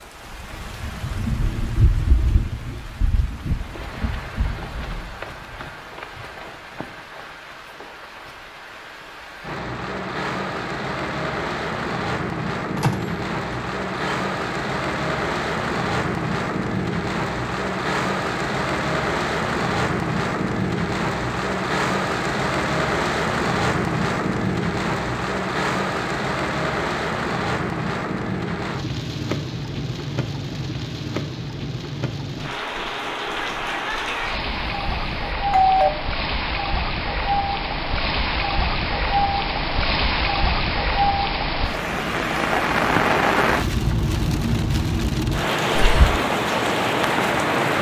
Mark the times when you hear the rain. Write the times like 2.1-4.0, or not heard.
0.0-47.7.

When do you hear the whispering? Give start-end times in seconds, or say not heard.
45.8-46.2.